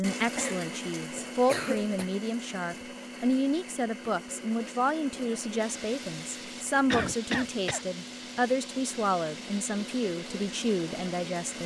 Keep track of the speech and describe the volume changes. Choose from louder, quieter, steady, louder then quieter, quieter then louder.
steady.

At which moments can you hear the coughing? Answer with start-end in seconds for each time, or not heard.
0.3-2.0, 6.9-7.8.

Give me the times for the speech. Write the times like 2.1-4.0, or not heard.
0.0-11.6.